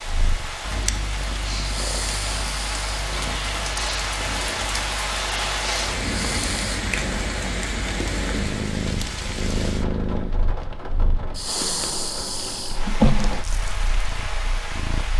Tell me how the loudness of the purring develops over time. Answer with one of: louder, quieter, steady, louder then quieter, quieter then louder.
louder.